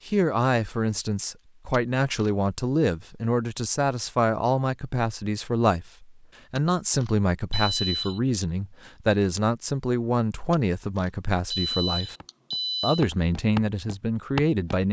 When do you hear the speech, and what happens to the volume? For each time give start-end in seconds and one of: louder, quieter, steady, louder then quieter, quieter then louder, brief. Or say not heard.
0.1-12.2 steady
12.8-14.8 brief.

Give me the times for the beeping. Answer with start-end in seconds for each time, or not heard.
1.7-2.3, 6.5-8.2, 10.5-13.1.